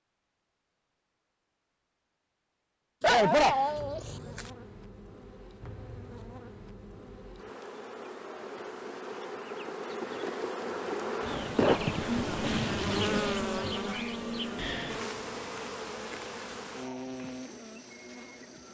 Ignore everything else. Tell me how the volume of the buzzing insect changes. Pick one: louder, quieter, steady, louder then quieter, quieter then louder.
louder then quieter.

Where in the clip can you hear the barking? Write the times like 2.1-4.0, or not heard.
3.0-4.5.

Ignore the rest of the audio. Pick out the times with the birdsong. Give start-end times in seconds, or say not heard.
not heard.